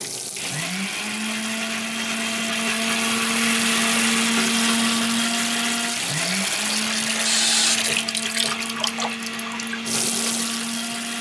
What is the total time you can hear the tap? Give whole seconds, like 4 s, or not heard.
11 s.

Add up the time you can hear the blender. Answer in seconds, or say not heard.
11 s.